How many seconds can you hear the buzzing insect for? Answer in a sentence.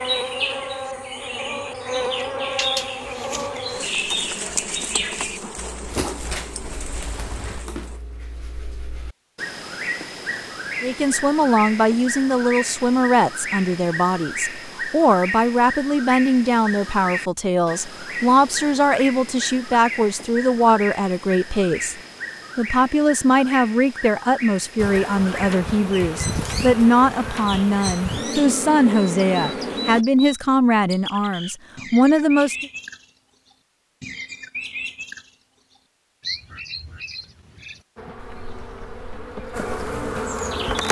The buzzing insect can be heard for 16 seconds in total.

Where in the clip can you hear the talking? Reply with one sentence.
You can hear the talking from 10.8 to 21.9 s and from 22.6 to 32.6 s.